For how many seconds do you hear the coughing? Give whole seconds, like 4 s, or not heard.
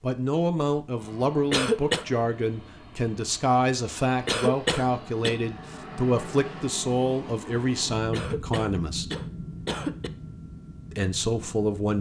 4 s.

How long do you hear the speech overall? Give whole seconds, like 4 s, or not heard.
10 s.